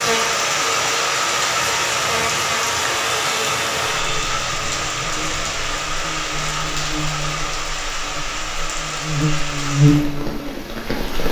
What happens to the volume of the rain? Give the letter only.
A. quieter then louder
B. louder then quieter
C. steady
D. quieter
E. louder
D.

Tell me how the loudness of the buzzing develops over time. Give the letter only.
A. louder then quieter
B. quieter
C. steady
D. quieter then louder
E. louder
D.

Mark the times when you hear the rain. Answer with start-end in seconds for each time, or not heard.
0.0-11.2.